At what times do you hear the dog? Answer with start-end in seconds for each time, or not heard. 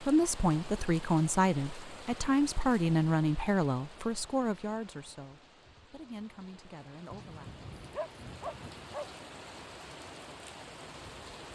7.1-9.1.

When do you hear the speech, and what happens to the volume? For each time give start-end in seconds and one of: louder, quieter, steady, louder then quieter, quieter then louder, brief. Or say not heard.
0.0-7.7 quieter.